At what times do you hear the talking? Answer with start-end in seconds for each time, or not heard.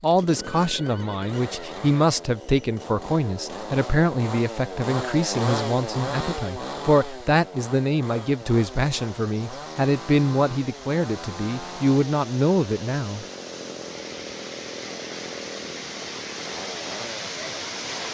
0.0-13.2.